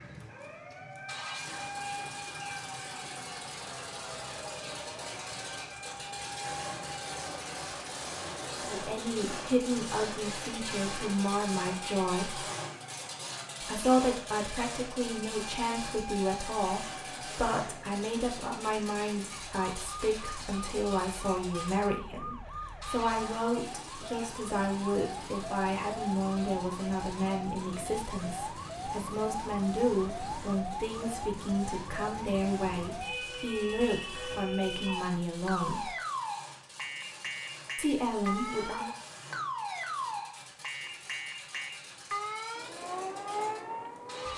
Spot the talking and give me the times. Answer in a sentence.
You can hear the talking from 8.6 to 12.4 s, from 13.6 to 35.9 s and from 37.8 to 38.9 s.